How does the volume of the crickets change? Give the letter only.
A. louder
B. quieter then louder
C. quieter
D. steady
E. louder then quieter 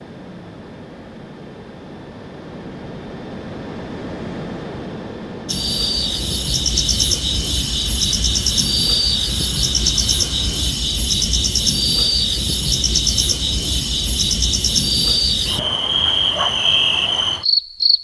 D.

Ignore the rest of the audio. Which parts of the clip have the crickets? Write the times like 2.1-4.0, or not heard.
5.5-17.9.